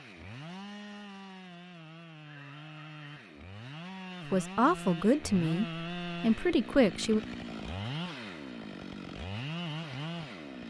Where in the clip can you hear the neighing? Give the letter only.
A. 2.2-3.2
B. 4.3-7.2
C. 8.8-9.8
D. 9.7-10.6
A.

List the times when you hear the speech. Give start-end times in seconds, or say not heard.
4.3-7.2.